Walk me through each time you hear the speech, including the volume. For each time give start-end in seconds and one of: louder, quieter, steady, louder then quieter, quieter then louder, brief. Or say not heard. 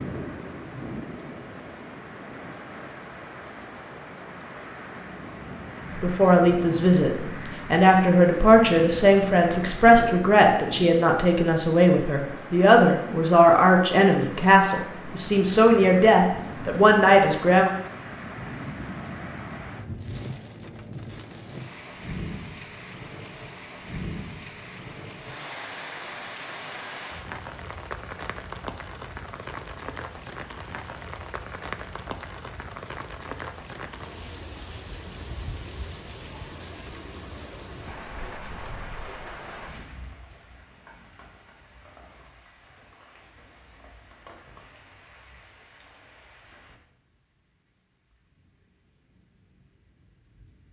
6.0-17.7 steady.